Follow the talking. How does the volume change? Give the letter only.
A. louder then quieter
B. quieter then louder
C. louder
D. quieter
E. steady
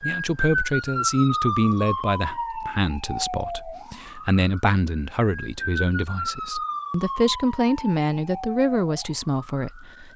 B.